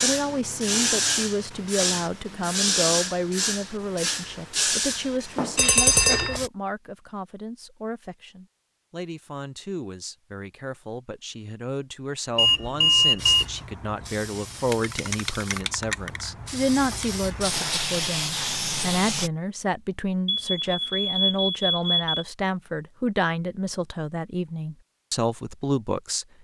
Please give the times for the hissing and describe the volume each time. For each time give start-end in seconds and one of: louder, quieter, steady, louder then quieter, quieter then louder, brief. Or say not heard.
0.0-6.5 quieter
13.2-19.3 louder.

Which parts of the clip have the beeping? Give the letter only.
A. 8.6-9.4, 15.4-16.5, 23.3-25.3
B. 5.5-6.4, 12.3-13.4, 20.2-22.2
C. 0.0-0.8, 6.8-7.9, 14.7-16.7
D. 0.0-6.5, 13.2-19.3
B.